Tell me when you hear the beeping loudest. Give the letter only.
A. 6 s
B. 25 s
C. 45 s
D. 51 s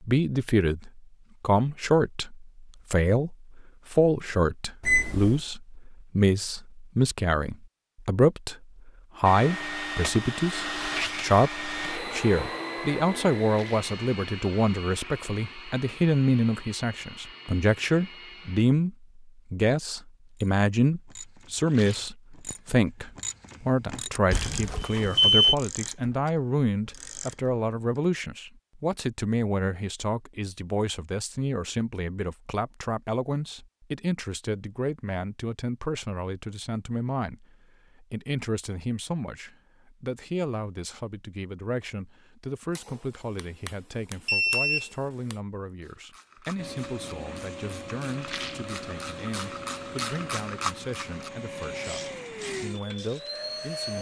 B.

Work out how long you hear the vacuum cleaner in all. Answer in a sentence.
The vacuum cleaner can be heard for 17 seconds in total.